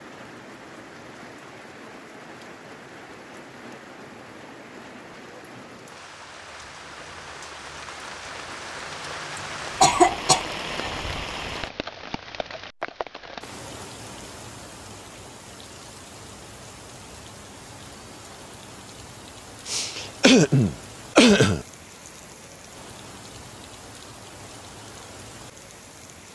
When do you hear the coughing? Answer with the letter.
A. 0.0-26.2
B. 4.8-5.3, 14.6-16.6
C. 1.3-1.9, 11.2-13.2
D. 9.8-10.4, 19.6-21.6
D.